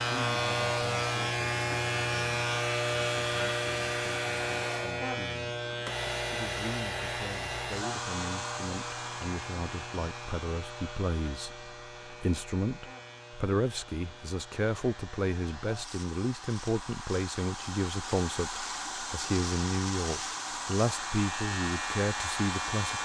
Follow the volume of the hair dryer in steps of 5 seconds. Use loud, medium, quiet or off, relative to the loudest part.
loud, loud, quiet, loud, loud.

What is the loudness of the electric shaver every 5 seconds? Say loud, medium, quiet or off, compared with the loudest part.
loud, medium, quiet, quiet, medium.